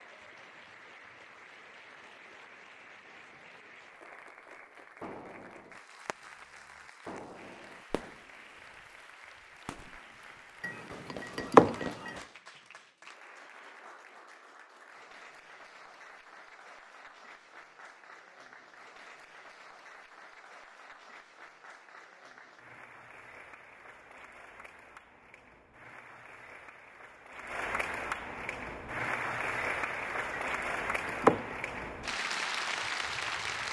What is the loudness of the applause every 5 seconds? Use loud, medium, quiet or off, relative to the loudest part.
quiet, quiet, quiet, quiet, quiet, loud, loud.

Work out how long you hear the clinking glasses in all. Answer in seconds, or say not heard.
3 s.